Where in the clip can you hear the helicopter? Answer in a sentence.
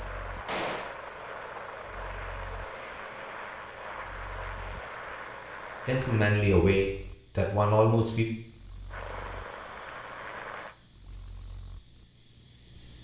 The helicopter can be heard from 0.0 to 6.3 s and from 8.8 to 10.8 s.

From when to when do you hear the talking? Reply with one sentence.
You can hear the talking from 5.8 to 8.2 s.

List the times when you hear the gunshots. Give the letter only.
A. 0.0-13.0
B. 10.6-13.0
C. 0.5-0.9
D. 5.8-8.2
C.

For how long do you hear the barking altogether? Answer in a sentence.
The barking can't be heard in this clip.